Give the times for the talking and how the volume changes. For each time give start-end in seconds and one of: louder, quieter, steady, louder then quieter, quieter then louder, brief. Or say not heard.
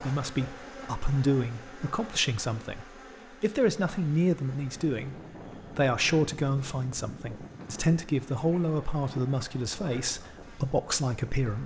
0.0-11.6 steady.